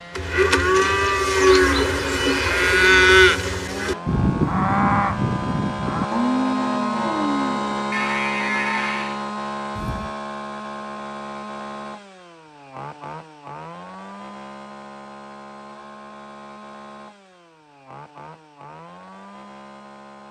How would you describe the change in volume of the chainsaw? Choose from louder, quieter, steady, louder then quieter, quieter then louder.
louder then quieter.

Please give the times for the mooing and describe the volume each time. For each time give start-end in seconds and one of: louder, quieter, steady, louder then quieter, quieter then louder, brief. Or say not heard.
0.1-10.2 quieter.